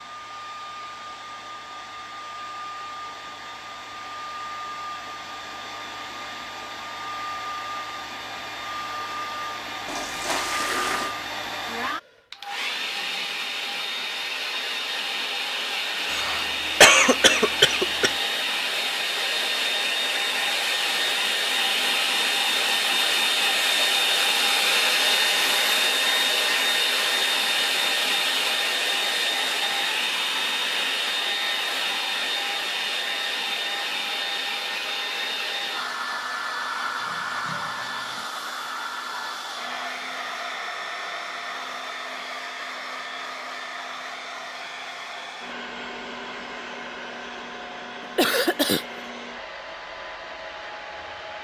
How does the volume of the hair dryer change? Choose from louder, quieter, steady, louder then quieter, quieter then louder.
louder then quieter.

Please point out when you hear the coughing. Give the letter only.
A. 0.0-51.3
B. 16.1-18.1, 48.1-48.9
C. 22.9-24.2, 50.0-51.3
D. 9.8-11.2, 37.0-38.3
B.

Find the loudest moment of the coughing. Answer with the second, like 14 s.
17 s.